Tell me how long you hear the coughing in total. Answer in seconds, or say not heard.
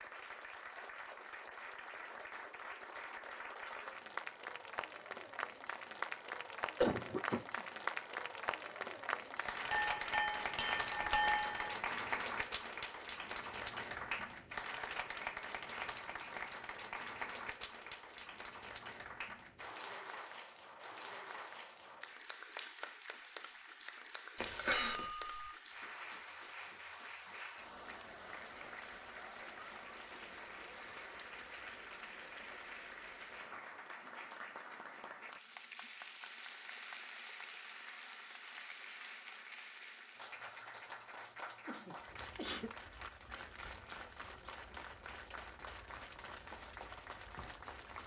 3 s.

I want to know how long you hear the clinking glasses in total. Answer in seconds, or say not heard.
3 s.